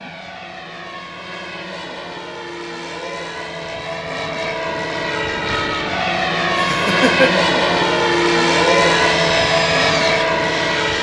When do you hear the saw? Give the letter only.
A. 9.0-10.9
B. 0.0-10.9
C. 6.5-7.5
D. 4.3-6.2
A.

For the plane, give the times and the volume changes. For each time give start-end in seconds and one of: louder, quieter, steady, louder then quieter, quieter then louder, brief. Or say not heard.
0.0-10.9 louder.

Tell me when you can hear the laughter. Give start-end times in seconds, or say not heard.
6.5-7.5.